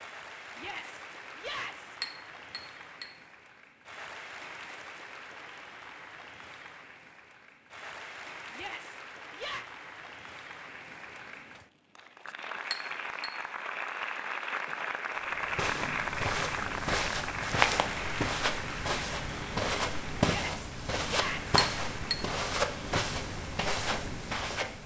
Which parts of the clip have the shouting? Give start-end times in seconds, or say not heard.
0.6-1.9, 8.5-9.7, 20.2-21.6.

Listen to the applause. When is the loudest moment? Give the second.
16 s.